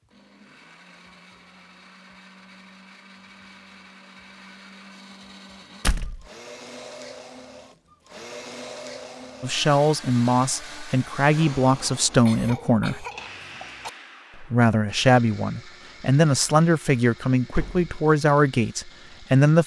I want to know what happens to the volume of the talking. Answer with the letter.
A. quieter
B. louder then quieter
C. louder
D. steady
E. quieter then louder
D.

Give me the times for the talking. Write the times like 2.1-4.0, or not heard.
9.4-13.1, 14.4-19.6.